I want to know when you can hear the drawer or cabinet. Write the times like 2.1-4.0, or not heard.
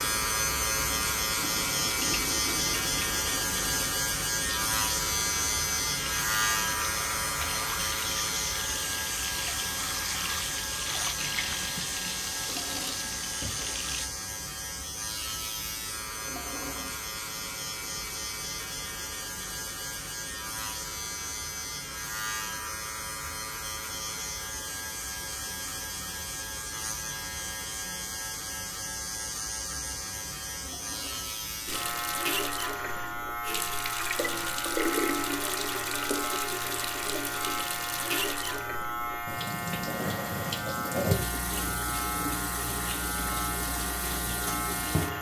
12.3-13.1, 16.1-16.9, 30.5-31.4.